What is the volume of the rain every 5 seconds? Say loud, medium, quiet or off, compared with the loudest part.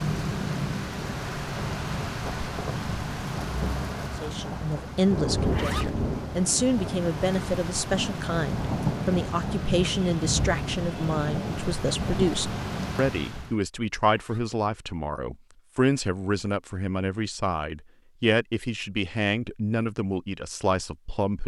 loud, loud, loud, off, off.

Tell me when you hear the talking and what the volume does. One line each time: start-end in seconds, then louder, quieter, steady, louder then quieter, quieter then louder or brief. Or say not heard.
4.2-21.4 steady.